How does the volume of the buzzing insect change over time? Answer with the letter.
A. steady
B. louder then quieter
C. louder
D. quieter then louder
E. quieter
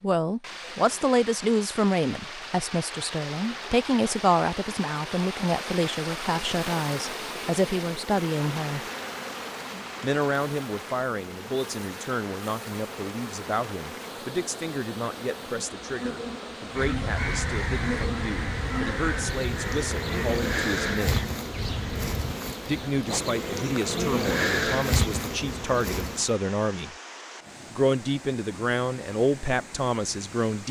C.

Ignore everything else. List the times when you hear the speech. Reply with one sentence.
You can hear the speech from 0.0 to 8.8 s, from 10.0 to 21.2 s, from 22.6 to 26.9 s and from 27.7 to 30.6 s.